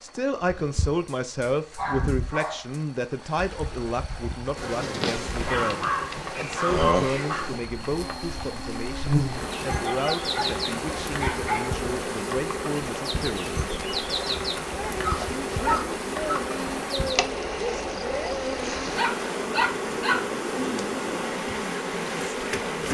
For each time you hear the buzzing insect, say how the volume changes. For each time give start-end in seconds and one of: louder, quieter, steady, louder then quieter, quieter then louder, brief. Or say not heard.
4.5-22.9 steady.